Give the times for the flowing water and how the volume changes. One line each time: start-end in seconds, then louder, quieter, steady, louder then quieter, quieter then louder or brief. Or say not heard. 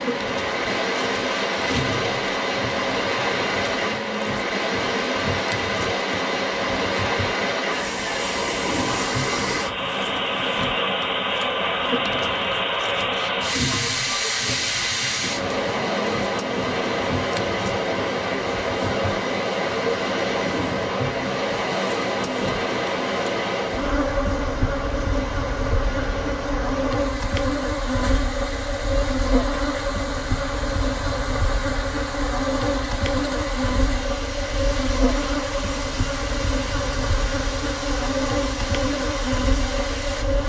0.0-40.4 quieter.